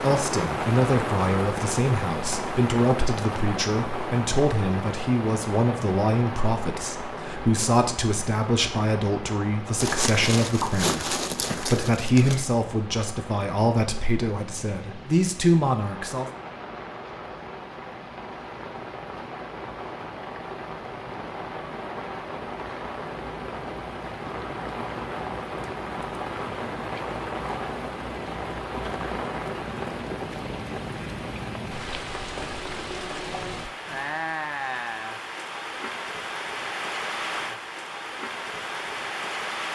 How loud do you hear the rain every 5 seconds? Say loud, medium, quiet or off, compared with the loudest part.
loud, medium, medium, medium, medium, loud, loud, loud.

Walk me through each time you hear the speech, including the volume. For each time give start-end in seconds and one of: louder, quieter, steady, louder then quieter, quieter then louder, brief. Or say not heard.
0.0-16.3 steady.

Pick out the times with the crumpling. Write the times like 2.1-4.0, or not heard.
9.8-12.4.